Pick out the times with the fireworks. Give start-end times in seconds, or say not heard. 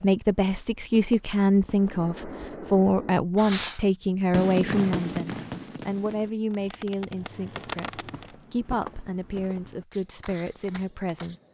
1.8-8.3.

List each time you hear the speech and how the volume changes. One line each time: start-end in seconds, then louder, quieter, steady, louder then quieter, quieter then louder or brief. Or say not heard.
0.0-11.3 quieter.